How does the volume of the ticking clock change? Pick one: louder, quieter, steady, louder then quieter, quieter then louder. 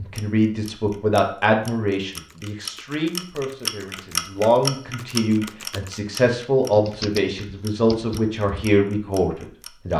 louder then quieter.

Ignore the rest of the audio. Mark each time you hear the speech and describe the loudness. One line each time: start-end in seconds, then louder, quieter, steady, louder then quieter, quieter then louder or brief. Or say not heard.
0.0-9.9 quieter then louder.